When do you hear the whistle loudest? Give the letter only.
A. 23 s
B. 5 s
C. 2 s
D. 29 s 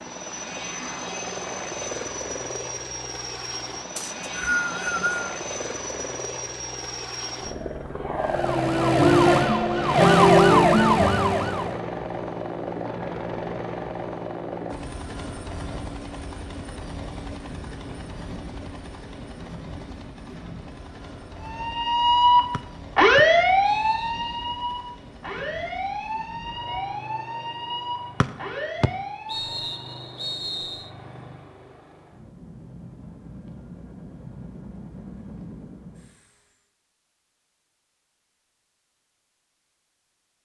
B.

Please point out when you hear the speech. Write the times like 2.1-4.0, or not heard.
not heard.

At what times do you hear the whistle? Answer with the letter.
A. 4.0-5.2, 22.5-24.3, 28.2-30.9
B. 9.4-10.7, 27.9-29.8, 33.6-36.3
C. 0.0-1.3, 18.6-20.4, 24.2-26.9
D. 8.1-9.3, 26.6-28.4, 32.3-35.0
A.